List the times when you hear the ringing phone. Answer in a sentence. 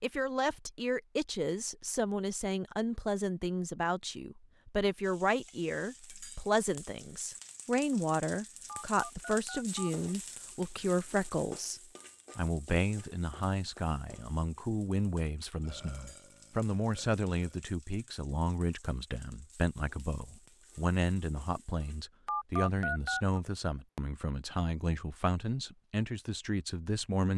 You can hear the ringing phone from 8.7 to 9.9 s and from 22.2 to 23.2 s.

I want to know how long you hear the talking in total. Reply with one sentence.
The talking can be heard for 27 seconds in total.